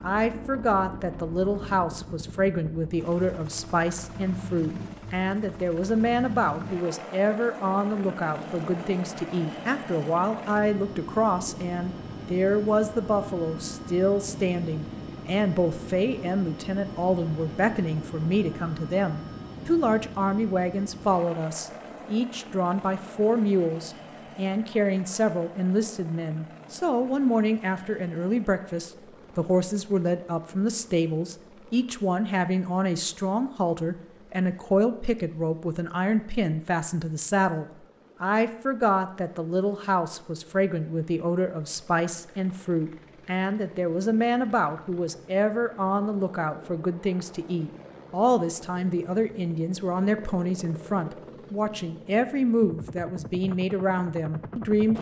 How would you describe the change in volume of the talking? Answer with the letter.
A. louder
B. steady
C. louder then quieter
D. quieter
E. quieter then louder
B.